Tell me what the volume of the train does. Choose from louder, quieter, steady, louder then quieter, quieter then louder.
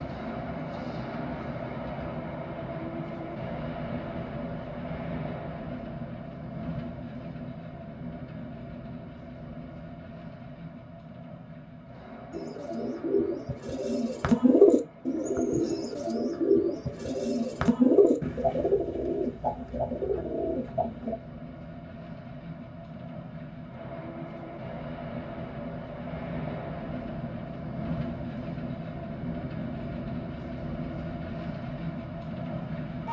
quieter then louder.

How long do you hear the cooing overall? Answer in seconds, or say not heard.
9 s.